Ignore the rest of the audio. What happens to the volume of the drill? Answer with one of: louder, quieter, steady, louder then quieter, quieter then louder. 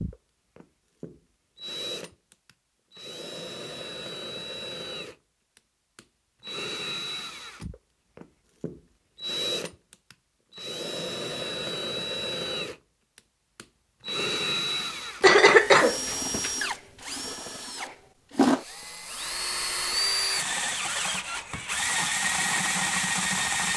louder.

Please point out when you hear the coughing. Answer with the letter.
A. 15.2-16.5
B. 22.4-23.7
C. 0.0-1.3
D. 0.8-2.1
A.